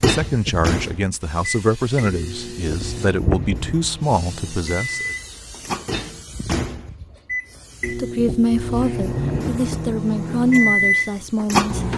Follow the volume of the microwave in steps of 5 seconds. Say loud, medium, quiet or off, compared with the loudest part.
medium, medium, loud.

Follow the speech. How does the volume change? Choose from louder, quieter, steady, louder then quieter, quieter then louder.
steady.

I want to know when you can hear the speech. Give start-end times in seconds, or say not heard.
0.0-5.1, 7.8-11.8.